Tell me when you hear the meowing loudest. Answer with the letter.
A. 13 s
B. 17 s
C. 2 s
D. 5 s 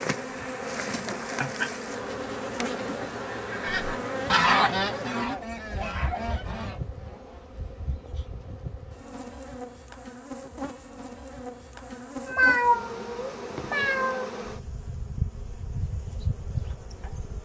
A.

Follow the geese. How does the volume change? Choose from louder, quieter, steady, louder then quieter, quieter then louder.
quieter.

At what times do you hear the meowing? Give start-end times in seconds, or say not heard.
1.4-1.9, 12.2-14.2.